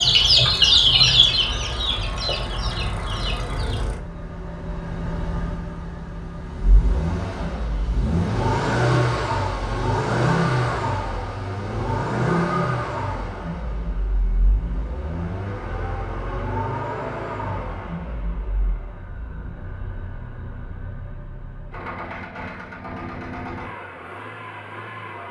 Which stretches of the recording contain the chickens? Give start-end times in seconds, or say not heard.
0.0-3.8.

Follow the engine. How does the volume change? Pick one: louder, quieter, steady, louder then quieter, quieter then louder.
louder then quieter.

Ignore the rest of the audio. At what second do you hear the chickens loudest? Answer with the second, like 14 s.
1 s.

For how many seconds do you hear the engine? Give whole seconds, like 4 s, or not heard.
25 s.